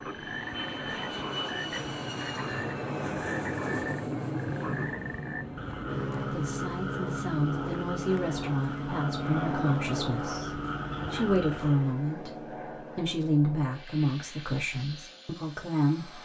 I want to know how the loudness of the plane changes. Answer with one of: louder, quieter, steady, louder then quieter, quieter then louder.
quieter.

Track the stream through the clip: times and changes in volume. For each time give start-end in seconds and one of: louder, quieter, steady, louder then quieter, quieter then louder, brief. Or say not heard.
not heard.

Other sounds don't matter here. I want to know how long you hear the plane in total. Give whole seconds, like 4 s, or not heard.
16 s.